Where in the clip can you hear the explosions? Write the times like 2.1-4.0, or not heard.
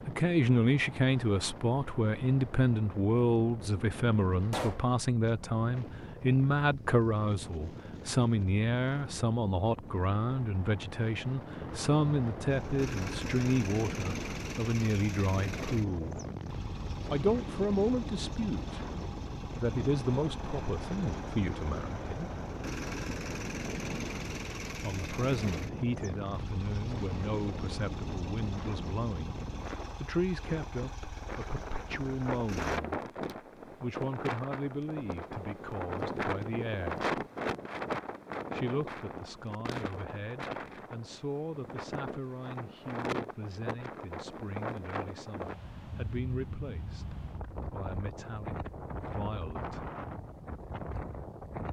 4.5-4.9.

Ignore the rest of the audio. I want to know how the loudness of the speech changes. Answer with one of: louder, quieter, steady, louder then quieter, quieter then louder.
quieter.